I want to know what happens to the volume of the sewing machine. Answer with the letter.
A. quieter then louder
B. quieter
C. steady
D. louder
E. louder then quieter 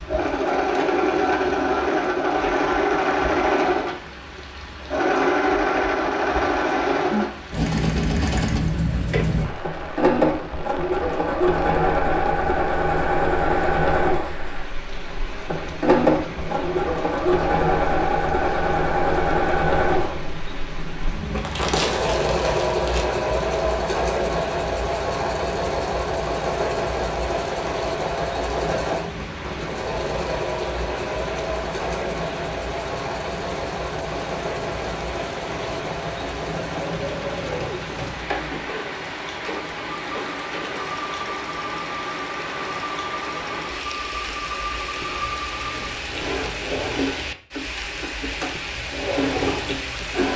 B.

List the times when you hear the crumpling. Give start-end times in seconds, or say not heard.
21.4-23.1.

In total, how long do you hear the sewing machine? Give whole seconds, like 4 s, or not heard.
50 s.